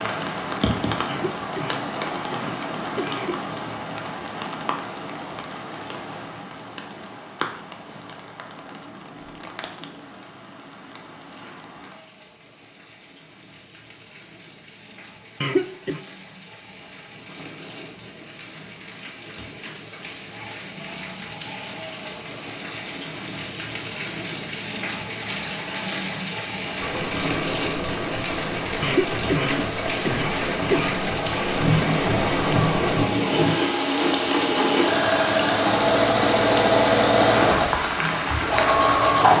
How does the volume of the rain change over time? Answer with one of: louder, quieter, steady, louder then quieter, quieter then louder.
quieter then louder.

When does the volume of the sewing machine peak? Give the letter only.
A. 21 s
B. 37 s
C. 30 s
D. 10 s
B.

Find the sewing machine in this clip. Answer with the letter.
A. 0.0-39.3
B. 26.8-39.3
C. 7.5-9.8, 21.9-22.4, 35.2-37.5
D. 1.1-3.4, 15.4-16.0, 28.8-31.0
B.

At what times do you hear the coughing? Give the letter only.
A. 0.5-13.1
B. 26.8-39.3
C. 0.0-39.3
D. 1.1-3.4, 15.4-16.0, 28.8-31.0
D.